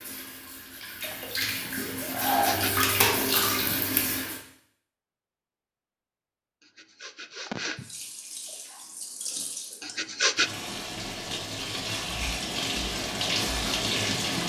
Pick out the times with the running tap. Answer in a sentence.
You can hear the running tap from 0.0 to 4.4 s and from 7.8 to 14.4 s.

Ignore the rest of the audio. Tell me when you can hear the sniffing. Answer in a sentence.
The sniffing can be heard from 2.2 to 2.9 s, from 6.8 to 7.9 s and from 9.8 to 10.5 s.